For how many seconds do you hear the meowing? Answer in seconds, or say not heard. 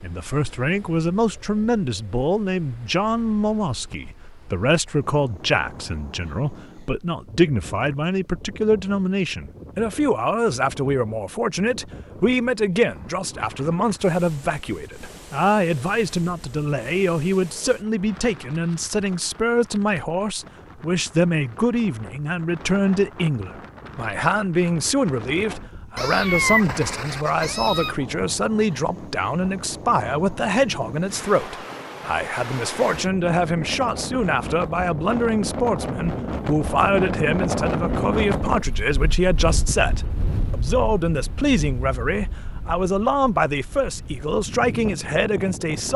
2 s.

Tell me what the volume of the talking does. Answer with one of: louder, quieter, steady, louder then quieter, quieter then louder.
steady.